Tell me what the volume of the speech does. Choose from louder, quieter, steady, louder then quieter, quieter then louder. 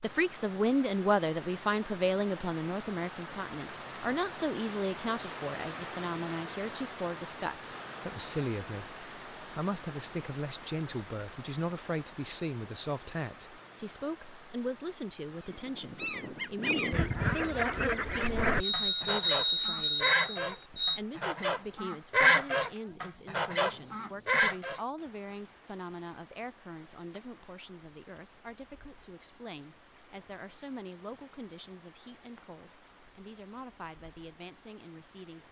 quieter.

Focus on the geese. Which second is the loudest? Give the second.
22 s.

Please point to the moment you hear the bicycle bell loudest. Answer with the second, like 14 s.
19 s.